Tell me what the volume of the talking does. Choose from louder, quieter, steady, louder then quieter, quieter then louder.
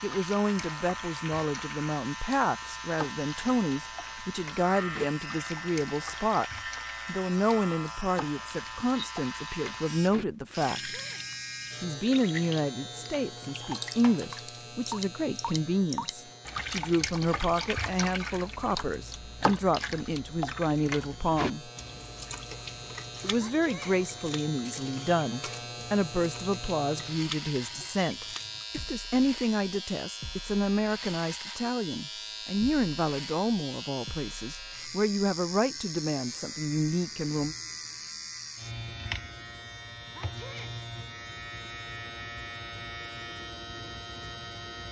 steady.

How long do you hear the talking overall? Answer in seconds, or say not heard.
35 s.